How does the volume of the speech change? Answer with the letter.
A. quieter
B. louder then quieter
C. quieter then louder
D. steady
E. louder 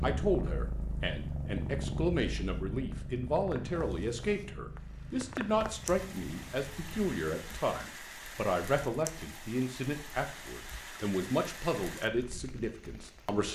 D.